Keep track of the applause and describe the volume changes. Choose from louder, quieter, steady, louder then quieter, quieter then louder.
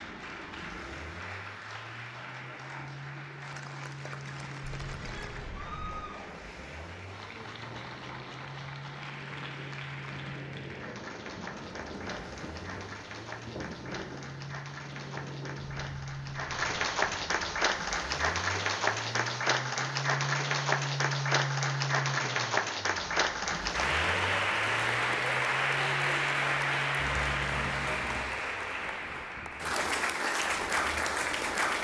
louder.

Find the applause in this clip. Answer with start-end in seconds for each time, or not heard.
0.0-31.8.